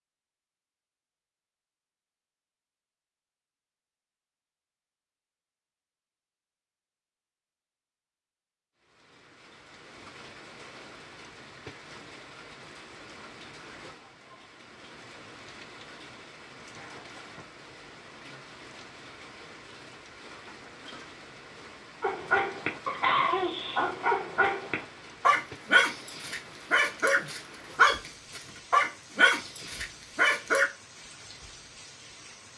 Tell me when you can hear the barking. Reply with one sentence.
You can hear the barking from 22.0 to 30.6 s.